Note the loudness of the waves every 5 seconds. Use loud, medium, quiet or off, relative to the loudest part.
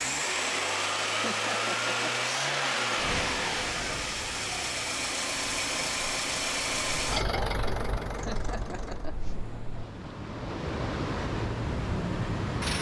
medium, medium, loud.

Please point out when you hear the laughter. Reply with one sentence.
You can hear the laughter from 1.1 to 2.1 s and from 8.1 to 9.3 s.